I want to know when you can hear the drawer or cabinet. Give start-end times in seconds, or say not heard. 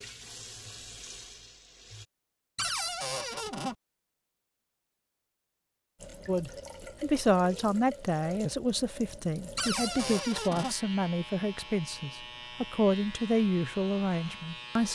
2.5-3.8, 9.6-10.8.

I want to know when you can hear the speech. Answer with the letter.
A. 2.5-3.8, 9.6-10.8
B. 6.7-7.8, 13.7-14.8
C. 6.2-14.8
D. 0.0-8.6
C.